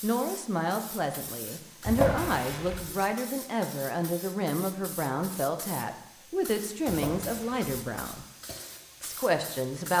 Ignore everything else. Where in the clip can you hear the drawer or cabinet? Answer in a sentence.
The drawer or cabinet can be heard from 1.9 to 2.9 s and from 6.8 to 7.7 s.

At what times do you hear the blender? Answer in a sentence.
The blender can't be heard in this clip.